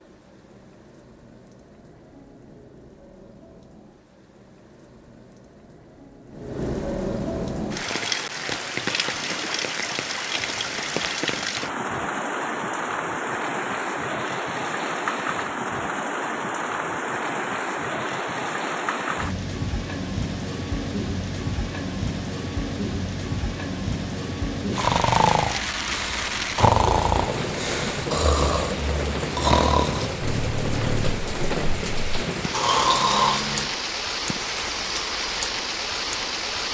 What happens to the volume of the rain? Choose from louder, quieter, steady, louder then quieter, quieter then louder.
louder.